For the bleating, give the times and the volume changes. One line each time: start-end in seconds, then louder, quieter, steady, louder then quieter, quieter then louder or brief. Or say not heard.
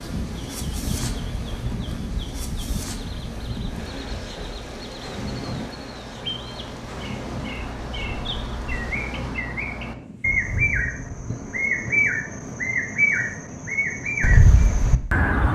not heard.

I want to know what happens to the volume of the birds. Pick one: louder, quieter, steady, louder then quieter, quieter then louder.
louder.